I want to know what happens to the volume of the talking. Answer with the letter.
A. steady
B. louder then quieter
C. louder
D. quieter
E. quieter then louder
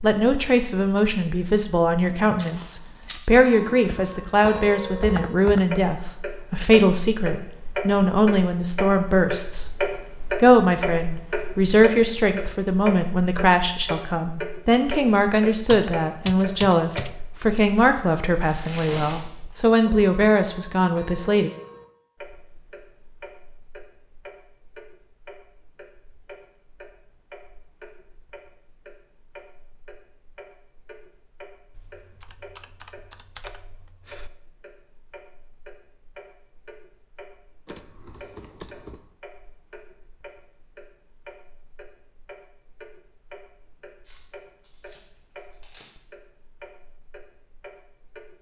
A.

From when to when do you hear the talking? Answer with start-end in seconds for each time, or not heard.
0.0-21.5.